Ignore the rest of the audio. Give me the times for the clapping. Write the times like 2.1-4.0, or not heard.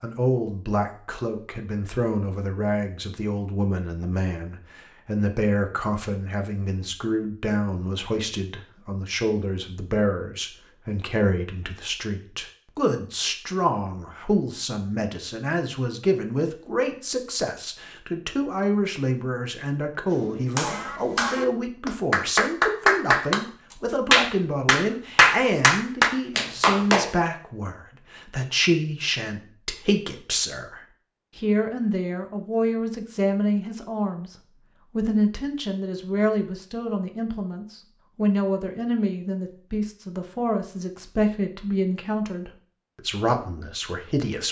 20.1-23.4, 24.1-27.1.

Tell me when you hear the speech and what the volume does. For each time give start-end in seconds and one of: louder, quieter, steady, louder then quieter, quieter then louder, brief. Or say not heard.
0.0-34.4 steady
35.0-44.4 steady.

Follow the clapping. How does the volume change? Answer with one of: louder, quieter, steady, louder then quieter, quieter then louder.
louder.